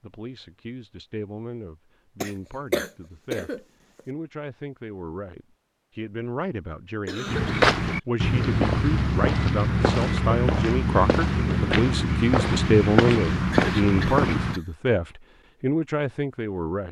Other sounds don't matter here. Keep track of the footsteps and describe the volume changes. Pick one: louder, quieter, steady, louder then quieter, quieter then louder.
steady.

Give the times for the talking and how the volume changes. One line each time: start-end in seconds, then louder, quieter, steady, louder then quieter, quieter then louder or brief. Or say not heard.
0.0-16.8 louder.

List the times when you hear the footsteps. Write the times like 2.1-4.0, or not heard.
7.2-14.6.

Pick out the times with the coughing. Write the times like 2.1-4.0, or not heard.
2.2-4.0, 7.0-7.7, 13.5-14.7.